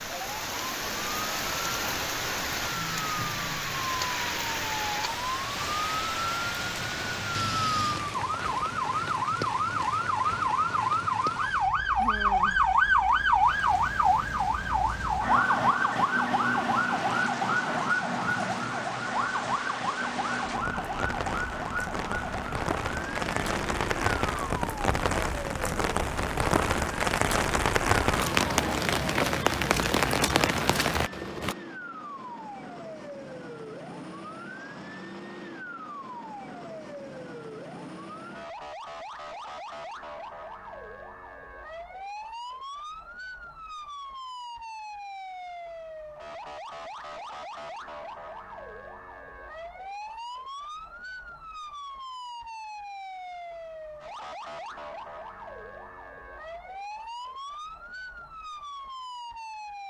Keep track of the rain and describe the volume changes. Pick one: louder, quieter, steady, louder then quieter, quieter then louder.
quieter then louder.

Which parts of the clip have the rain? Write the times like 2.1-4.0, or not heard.
0.0-31.6.